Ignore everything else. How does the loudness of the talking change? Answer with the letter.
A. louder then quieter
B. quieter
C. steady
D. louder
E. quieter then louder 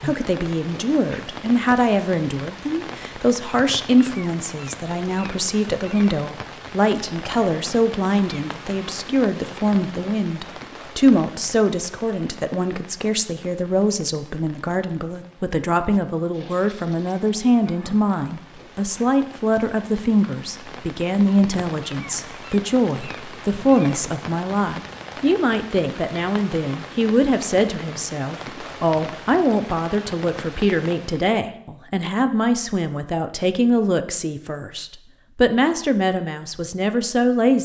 C.